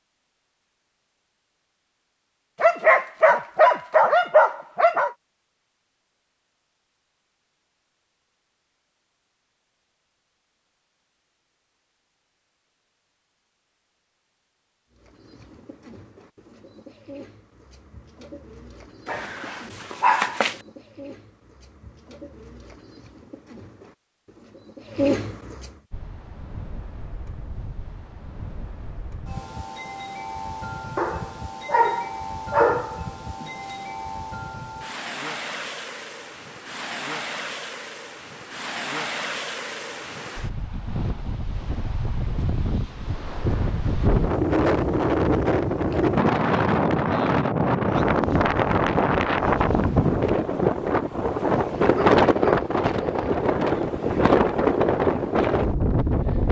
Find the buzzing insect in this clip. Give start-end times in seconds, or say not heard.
not heard.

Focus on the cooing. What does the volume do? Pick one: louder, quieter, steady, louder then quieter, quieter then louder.
louder.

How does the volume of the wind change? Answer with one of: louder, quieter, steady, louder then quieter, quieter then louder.
louder.